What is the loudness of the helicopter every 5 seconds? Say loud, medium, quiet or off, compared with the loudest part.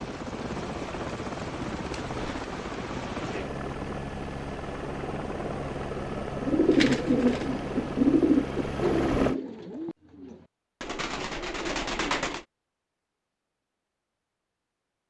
loud, loud, off.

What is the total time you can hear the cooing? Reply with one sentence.
You can hear the cooing for 6 seconds altogether.